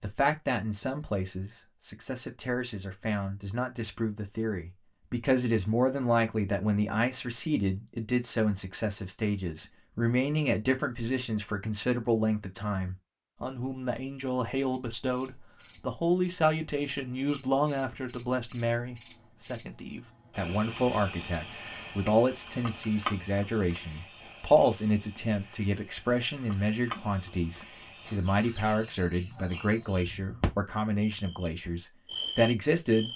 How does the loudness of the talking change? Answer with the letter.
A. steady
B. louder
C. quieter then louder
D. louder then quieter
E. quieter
A.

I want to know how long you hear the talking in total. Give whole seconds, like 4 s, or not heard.
33 s.